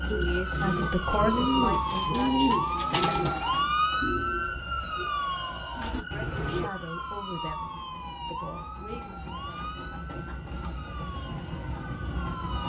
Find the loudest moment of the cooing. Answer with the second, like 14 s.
2 s.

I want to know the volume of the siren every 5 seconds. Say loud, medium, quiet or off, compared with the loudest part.
loud, medium, quiet.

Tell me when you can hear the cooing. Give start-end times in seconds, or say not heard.
0.1-6.7.